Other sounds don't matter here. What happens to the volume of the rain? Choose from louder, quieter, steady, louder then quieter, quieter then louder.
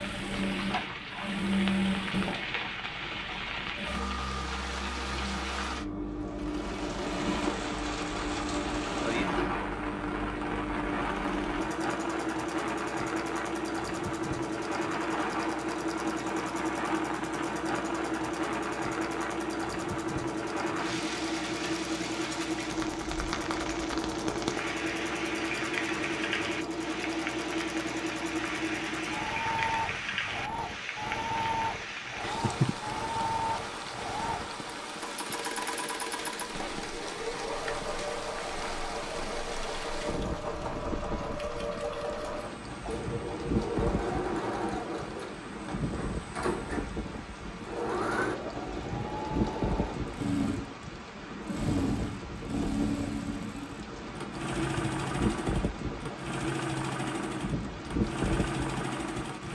steady.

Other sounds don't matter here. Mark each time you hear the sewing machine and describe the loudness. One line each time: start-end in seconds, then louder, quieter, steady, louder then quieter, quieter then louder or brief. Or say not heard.
0.0-59.4 steady.